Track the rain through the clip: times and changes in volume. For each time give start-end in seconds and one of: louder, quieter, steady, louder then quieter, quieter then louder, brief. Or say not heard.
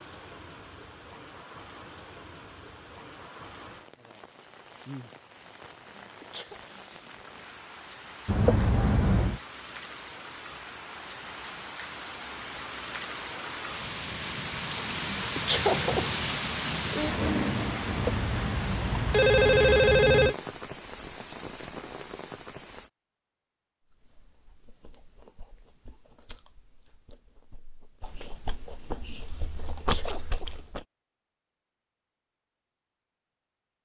0.0-22.9 louder then quieter.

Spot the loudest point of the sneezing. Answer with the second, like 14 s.
16 s.